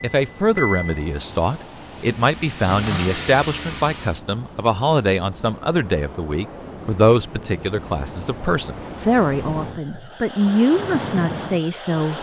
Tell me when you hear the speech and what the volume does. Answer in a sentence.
The speech can be heard from 0.0 to 12.1 s, at a steady volume.